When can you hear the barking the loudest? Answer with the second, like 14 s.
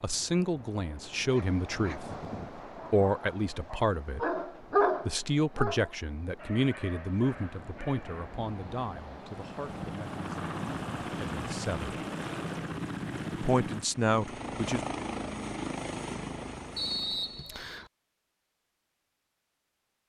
5 s.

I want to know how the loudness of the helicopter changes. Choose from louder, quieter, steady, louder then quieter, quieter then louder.
steady.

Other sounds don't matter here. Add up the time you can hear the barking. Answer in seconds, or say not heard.
7 s.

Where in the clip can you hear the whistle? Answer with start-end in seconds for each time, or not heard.
16.8-17.9.